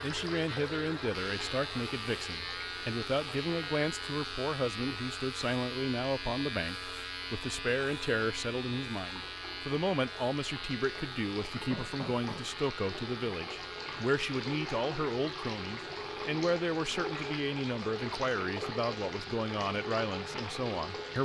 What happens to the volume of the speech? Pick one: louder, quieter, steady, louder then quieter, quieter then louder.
steady.